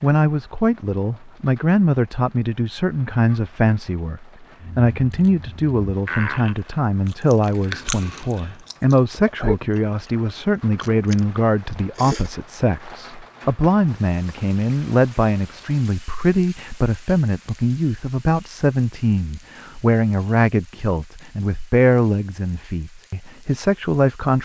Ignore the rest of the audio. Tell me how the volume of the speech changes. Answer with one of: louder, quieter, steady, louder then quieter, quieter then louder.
steady.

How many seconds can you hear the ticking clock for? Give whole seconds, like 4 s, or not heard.
not heard.